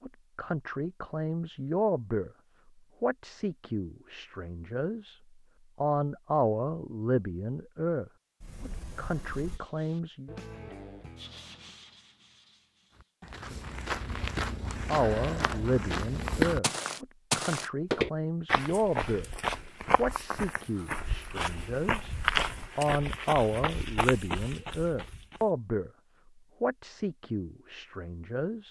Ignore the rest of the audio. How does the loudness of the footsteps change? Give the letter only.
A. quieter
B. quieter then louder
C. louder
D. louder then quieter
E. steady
D.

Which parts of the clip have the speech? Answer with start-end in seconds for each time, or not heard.
0.0-2.3, 3.0-10.3, 14.8-19.3, 19.9-22.1, 22.8-25.9, 26.6-28.6.